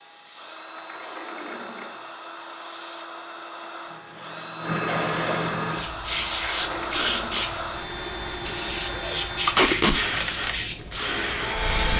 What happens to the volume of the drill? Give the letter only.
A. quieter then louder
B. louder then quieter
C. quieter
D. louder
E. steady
D.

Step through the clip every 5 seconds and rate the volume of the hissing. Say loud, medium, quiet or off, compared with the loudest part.
medium, loud, loud.